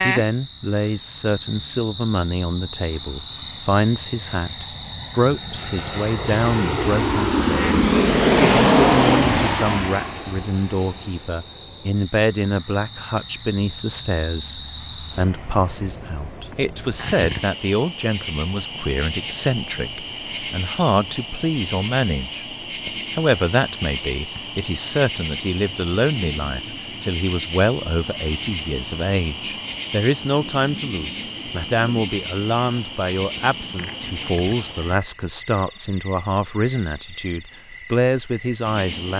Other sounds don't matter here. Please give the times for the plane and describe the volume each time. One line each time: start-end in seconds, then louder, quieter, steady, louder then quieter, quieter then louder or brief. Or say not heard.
0.0-15.6 louder then quieter.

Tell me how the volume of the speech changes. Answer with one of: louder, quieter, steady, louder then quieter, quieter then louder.
steady.